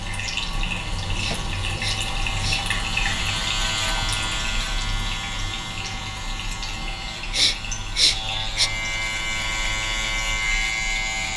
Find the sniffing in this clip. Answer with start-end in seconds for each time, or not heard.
1.1-2.6, 7.3-8.7.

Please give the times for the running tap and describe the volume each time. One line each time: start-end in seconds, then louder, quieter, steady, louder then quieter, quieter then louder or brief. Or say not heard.
0.0-11.3 quieter.